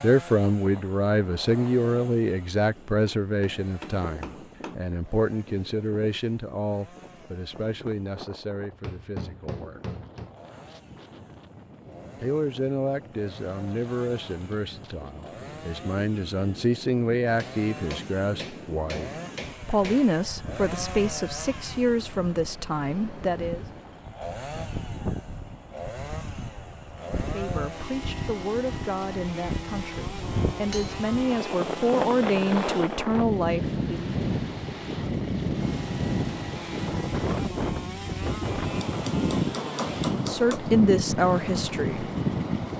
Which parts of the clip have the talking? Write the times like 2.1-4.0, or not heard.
0.0-9.8, 12.2-23.6, 27.1-34.1, 40.1-42.0.